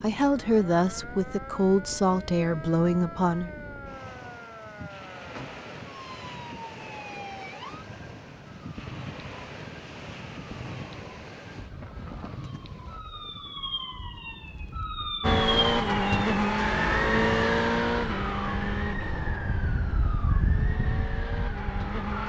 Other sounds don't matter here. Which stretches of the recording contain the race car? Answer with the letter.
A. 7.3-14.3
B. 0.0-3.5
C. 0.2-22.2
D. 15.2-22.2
D.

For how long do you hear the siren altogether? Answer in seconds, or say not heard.
22 s.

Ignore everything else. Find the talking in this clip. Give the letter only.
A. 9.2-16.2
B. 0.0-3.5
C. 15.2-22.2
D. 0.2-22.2
B.